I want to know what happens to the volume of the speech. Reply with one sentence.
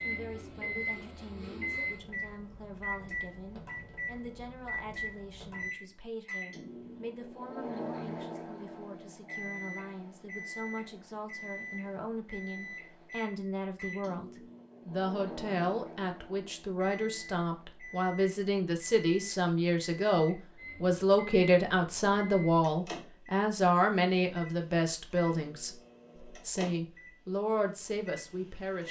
The volume of the speech goes up.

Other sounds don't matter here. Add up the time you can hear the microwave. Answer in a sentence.
The microwave can be heard for 29 seconds in total.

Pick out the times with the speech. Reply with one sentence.
You can hear the speech from 0.0 to 28.8 s.